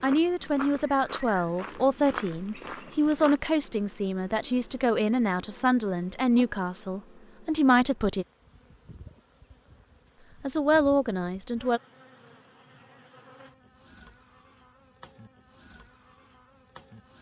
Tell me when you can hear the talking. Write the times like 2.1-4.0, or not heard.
0.0-8.2, 10.4-11.8.